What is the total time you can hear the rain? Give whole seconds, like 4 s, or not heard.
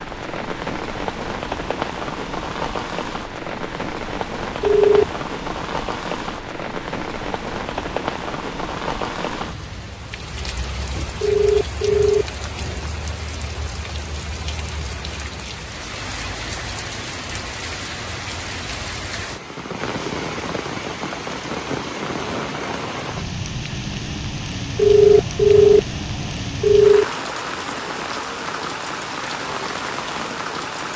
31 s.